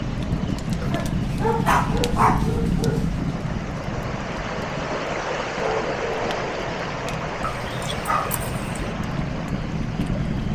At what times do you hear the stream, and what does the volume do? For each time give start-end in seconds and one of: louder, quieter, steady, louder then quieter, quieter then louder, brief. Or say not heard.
0.0-10.5 louder then quieter.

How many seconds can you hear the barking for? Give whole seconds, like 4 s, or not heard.
3 s.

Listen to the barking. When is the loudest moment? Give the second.
2 s.